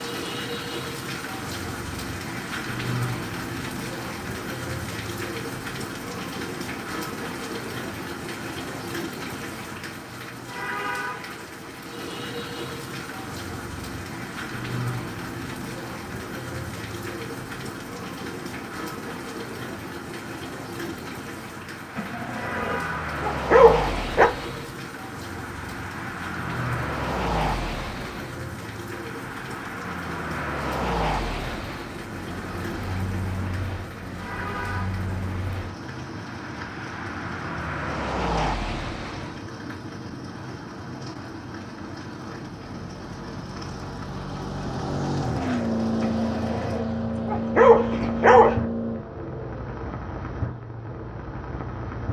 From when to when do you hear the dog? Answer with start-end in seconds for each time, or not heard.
21.9-24.3, 46.0-48.5.